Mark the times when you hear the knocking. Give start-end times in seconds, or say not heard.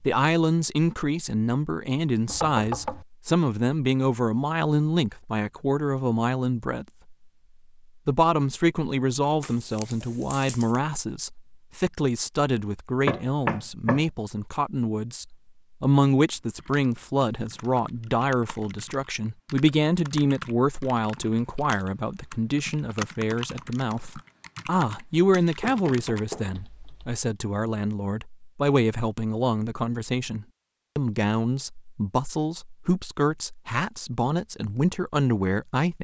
2.2-3.0, 13.1-14.0, 25.6-26.5.